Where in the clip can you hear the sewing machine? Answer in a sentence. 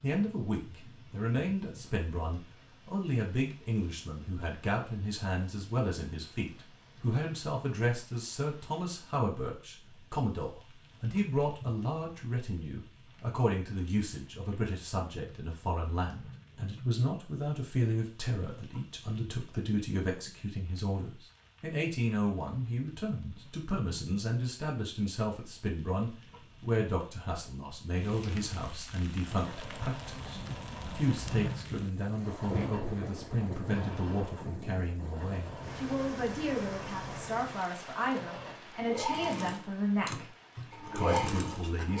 You can hear the sewing machine from 29.2 to 41.9 s.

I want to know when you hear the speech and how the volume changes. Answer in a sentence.
You can hear the speech from 0.0 to 41.9 s, at a steady volume.